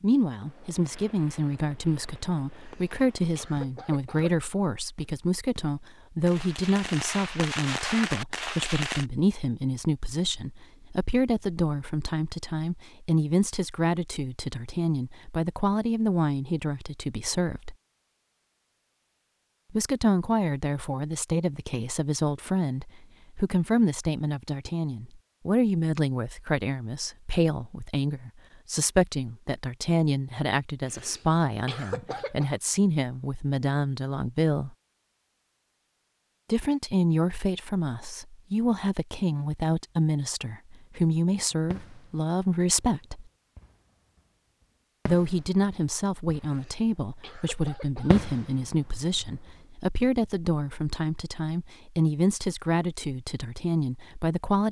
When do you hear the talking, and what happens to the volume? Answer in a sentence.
You can hear the talking from 0.0 to 17.8 s, at a steady volume; from 19.7 to 34.8 s, at a steady volume; from 36.5 to 43.2 s, at a steady volume; and from 45.0 to 54.6 s, at a steady volume.